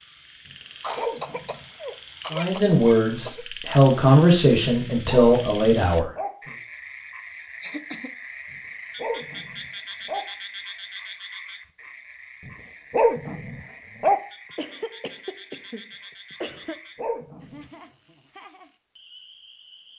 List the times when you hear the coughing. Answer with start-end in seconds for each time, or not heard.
0.8-3.5, 7.6-8.2, 14.1-16.8.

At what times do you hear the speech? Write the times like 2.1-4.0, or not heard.
2.3-6.1.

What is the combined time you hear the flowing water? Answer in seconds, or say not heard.
not heard.